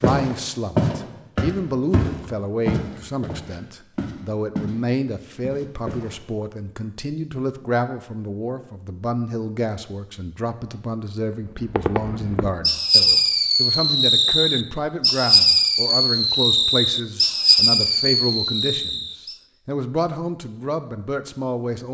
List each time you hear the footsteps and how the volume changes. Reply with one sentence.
The footsteps can be heard from 0.0 to 4.8 s, getting quieter; and briefly from 5.4 to 6.2 s.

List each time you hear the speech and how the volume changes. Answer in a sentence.
The speech can be heard from 0.0 to 21.8 s, at a steady volume.